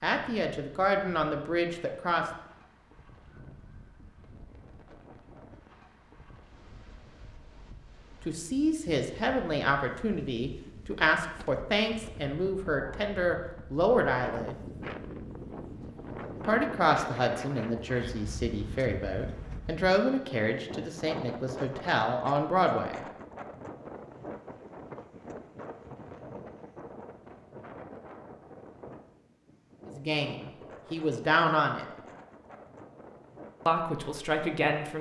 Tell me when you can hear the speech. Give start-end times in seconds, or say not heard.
0.0-2.2, 8.2-14.6, 16.4-23.1, 29.9-31.9, 33.6-34.9.